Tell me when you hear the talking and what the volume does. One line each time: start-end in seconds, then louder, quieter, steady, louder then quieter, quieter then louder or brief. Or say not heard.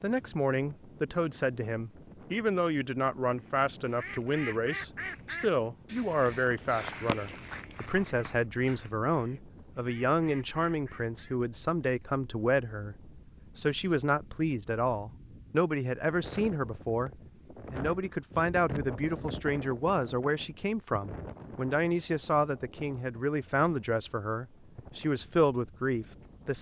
0.0-26.5 steady.